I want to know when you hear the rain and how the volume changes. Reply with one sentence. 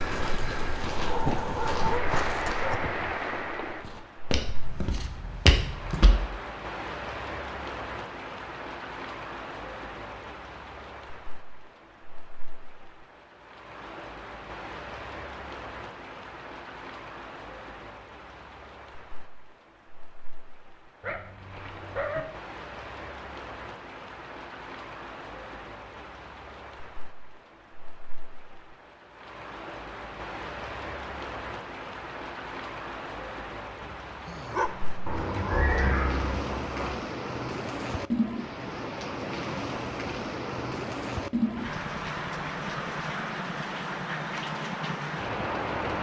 The rain can be heard from 0.0 to 45.9 s, getting quieter then louder.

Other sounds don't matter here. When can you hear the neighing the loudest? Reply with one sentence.
The loudest moment of the neighing is at 36 seconds.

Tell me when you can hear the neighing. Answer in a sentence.
The neighing can be heard from 35.0 to 37.0 s.